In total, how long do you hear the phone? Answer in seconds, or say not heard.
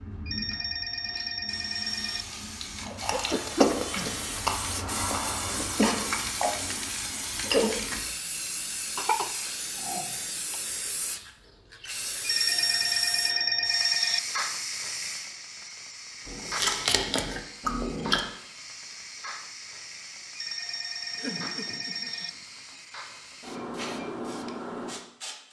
6 s.